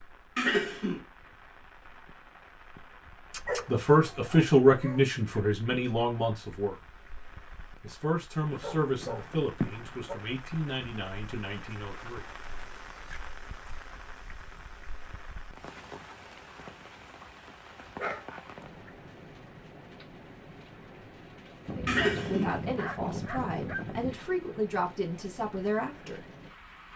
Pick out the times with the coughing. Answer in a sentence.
You can hear the coughing from 0.3 to 1.1 s and from 21.9 to 22.7 s.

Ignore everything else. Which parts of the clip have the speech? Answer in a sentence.
You can hear the speech from 3.6 to 6.8 s, from 7.8 to 12.2 s and from 21.9 to 26.2 s.